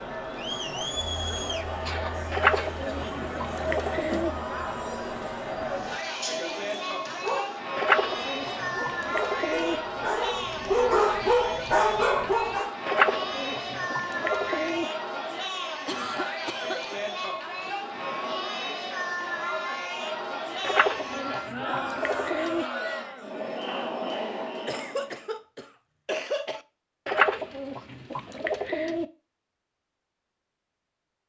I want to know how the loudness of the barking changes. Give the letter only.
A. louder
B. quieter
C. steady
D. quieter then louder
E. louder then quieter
A.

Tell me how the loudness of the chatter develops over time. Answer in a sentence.
The loudness of the chatter stays about the same.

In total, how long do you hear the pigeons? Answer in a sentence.
The pigeons can be heard for 10 seconds in total.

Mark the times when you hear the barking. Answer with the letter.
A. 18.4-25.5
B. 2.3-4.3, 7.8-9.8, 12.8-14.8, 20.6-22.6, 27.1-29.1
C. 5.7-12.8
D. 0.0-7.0
C.